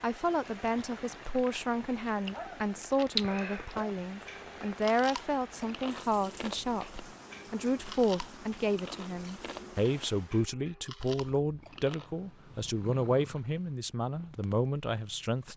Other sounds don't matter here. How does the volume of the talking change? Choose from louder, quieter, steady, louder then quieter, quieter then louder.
steady.